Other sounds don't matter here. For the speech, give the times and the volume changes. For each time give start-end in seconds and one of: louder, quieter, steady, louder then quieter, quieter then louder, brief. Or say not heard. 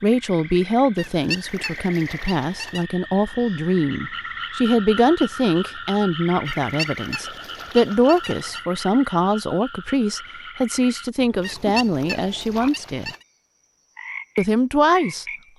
0.0-13.1 steady
14.3-15.5 brief.